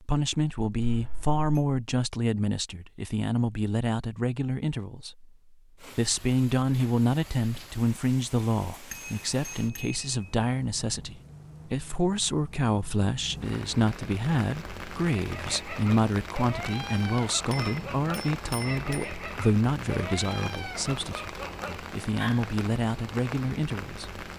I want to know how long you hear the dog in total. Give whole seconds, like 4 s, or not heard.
7 s.